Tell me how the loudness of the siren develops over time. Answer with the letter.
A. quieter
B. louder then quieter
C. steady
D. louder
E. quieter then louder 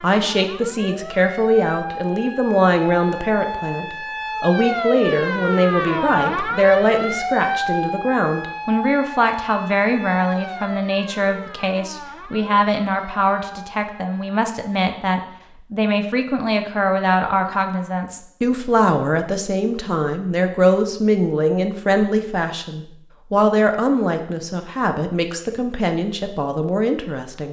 B.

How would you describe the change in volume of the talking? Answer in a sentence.
The loudness of the talking stays about the same.